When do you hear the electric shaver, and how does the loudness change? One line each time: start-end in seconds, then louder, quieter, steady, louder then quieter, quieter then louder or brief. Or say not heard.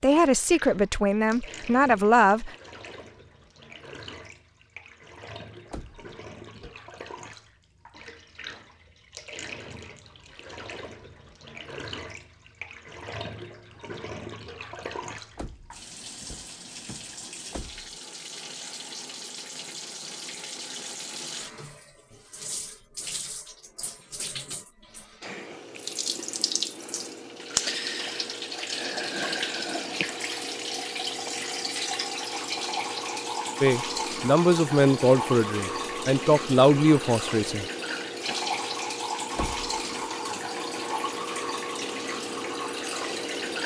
not heard.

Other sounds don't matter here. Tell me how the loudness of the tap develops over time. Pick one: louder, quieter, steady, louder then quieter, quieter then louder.
louder.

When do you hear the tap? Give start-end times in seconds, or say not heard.
0.0-43.6.